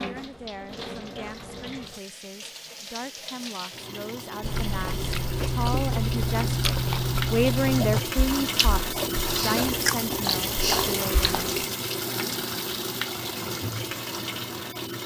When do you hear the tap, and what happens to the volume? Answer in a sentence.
You can hear the tap from 0.0 to 15.0 s, getting louder.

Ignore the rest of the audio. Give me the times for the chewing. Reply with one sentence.
You can hear the chewing from 4.4 to 11.7 s.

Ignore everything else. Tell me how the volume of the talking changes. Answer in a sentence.
The volume of the talking goes up, then down.